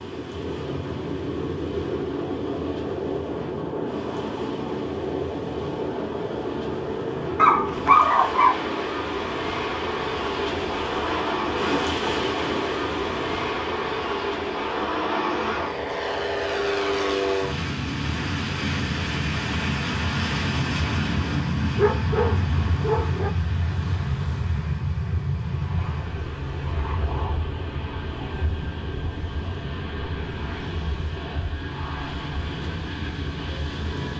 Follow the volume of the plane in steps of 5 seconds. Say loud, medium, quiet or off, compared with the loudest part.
loud, loud, loud, loud, loud, medium, medium.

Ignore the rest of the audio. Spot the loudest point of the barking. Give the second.
8 s.